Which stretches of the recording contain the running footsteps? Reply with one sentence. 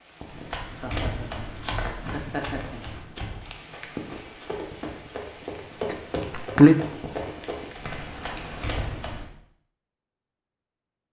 You can hear the running footsteps from 0.2 to 9.2 s.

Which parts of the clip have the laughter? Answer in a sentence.
You can hear the laughter from 0.8 to 3.0 s and from 5.9 to 6.8 s.